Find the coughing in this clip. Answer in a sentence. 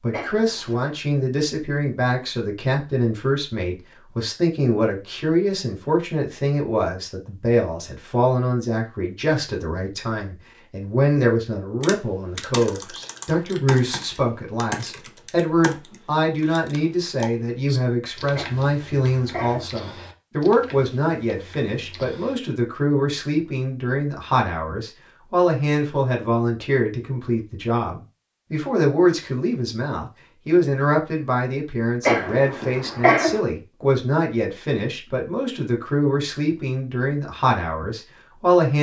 You can hear the coughing from 0.1 to 0.9 s, from 18.4 to 19.7 s and from 32.0 to 33.4 s.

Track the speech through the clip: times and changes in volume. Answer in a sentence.
You can hear the speech from 0.0 to 38.7 s, at a steady volume.